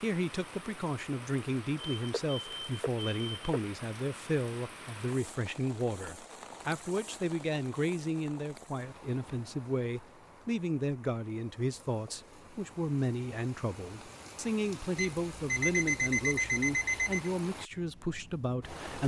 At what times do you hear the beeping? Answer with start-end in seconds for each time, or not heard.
1.8-3.6, 14.9-17.3.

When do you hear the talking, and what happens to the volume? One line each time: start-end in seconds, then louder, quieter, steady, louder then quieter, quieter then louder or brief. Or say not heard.
0.0-19.0 steady.